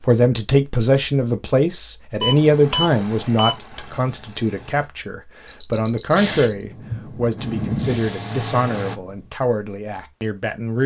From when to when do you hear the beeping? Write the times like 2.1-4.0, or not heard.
2.2-3.5, 5.5-6.7.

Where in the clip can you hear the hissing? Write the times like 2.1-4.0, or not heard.
6.2-9.3.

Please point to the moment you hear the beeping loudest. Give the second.
6 s.